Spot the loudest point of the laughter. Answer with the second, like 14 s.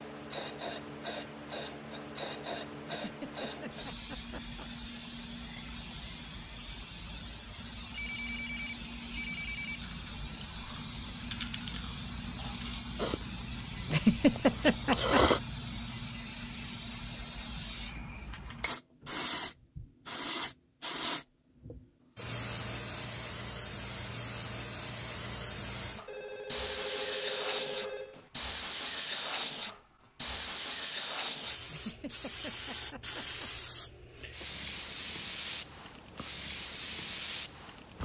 14 s.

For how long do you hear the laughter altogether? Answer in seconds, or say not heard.
5 s.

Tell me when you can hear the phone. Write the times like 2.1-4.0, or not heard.
7.8-9.8, 26.1-28.4.